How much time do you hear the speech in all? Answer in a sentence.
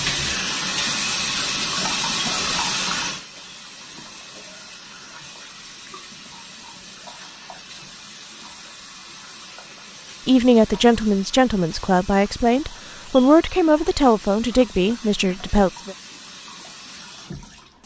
You can hear the speech for 6 seconds altogether.